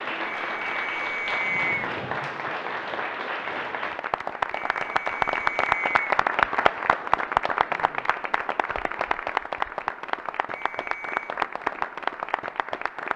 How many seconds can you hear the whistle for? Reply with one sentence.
The whistle can be heard for 4 seconds in total.